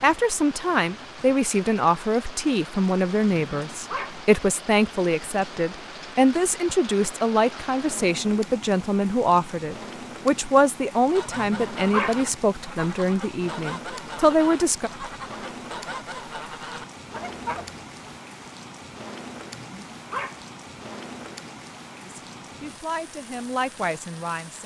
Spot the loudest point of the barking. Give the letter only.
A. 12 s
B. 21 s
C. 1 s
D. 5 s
A.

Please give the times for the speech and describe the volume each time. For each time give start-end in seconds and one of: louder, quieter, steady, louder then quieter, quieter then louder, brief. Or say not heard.
0.0-14.9 steady
22.1-24.6 brief.